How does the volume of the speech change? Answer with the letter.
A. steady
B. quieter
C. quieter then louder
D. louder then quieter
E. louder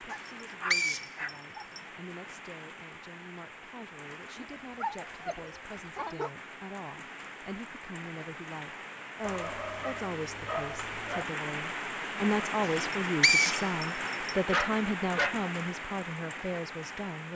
E.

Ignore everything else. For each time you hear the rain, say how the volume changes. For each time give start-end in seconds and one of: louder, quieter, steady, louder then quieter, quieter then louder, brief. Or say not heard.
0.0-17.3 louder.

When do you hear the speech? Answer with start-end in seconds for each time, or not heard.
0.0-17.3.